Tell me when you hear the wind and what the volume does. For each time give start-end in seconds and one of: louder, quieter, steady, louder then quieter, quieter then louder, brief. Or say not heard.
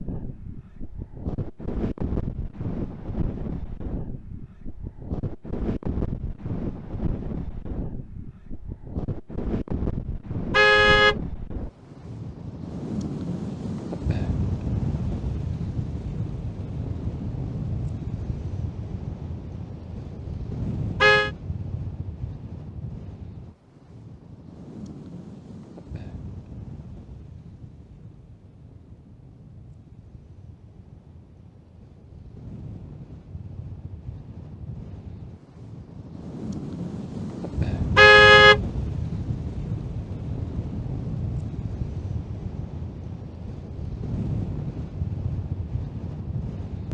0.0-46.8 quieter then louder.